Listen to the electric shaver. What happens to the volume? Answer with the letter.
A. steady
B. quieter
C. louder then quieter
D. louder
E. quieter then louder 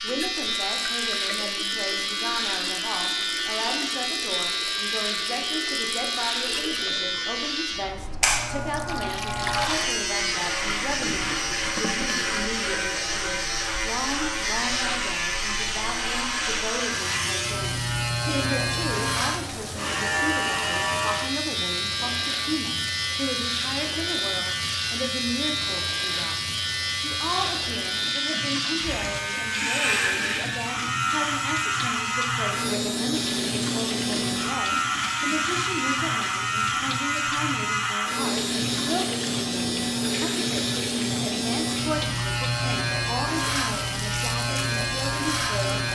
A.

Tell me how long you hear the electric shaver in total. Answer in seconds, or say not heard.
46 s.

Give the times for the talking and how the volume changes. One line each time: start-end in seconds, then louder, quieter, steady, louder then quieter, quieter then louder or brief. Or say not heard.
0.0-45.8 steady.